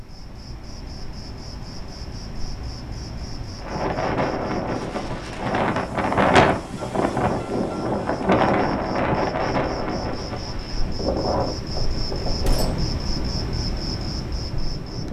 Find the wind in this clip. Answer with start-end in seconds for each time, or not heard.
3.6-15.0.